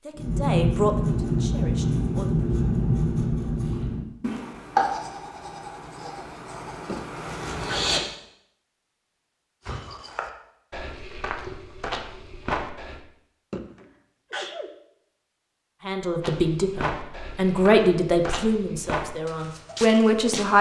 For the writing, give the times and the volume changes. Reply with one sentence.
You can hear the writing from 0.1 to 8.0 s, getting quieter.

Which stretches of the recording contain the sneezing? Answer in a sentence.
The sneezing can be heard from 6.8 to 8.0 s and from 13.5 to 14.7 s.